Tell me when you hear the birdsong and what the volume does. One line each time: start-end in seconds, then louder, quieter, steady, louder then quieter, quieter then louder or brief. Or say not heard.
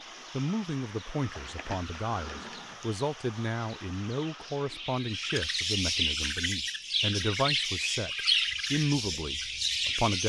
0.0-10.2 louder.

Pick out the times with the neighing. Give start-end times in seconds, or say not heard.
1.3-2.9.